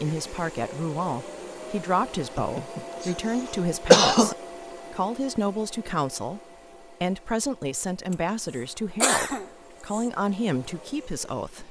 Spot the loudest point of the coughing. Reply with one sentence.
The volume of the coughing peaks at 4 seconds.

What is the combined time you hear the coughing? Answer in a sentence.
The coughing can be heard for 4 seconds in total.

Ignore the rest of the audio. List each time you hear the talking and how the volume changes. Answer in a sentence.
The talking can be heard from 0.0 to 11.6 s, at a steady volume.